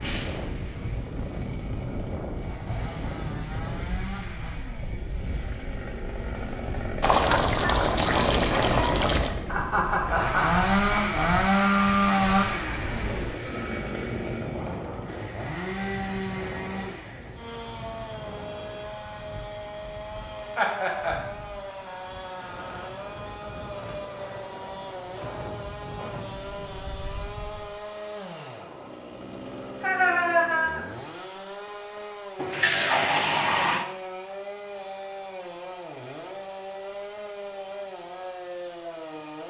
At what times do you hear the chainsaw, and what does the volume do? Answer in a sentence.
The chainsaw can be heard from 0.0 to 39.4 s, getting louder then quieter.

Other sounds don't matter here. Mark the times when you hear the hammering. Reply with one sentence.
The hammering can't be heard in this clip.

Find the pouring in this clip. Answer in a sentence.
The pouring can be heard from 7.0 to 9.3 s and from 32.4 to 33.9 s.